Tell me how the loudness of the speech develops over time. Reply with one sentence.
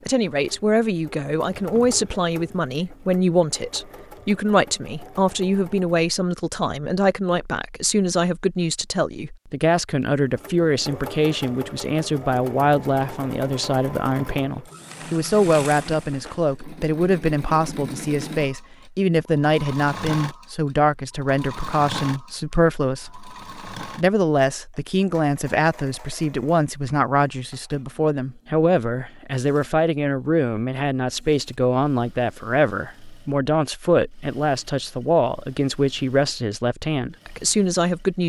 The loudness of the speech stays about the same.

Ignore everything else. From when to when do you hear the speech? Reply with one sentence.
You can hear the speech from 0.1 to 38.2 s.